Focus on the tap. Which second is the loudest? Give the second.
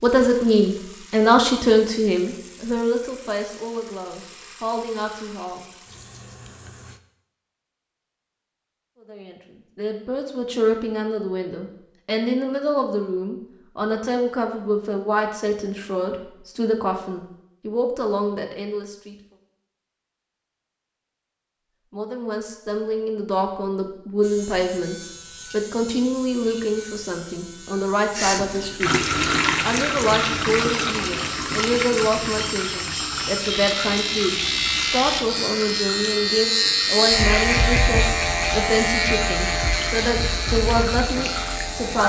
29 s.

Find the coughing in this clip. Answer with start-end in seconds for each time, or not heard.
not heard.